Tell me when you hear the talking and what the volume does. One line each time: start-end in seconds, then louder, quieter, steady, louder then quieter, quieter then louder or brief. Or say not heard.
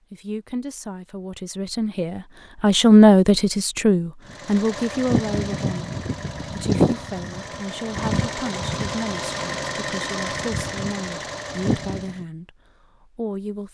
0.1-13.7 quieter.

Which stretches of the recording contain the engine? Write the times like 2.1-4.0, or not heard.
4.2-12.2.